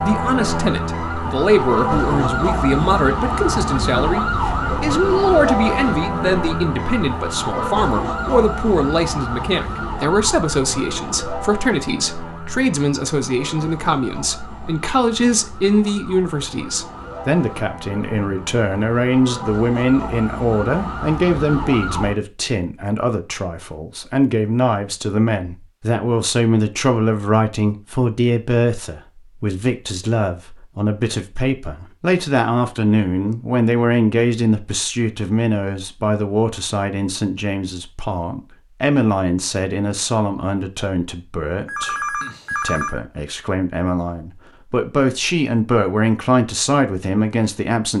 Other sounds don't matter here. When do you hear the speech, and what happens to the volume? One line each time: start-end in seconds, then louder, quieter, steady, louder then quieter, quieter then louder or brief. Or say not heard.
0.0-47.9 steady.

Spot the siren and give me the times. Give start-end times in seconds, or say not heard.
0.0-22.1.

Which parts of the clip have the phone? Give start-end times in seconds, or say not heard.
41.6-43.0.